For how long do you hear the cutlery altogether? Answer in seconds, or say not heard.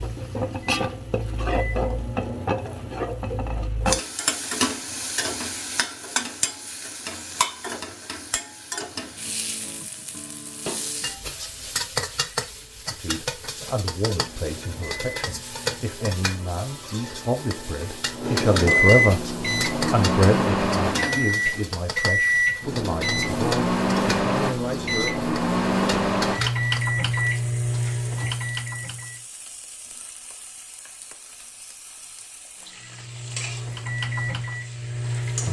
not heard.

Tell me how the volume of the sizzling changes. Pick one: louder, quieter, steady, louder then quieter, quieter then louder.
quieter.